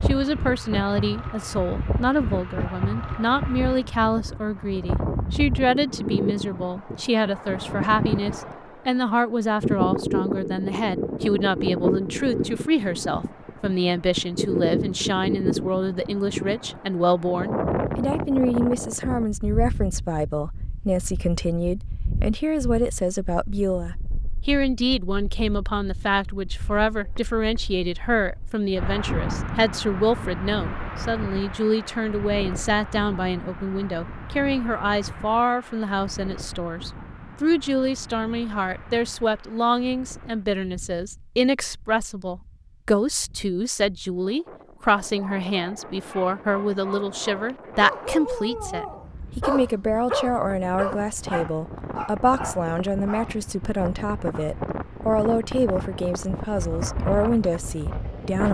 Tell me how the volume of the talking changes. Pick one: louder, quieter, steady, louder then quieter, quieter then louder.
steady.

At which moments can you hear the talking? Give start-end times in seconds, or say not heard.
0.0-58.4.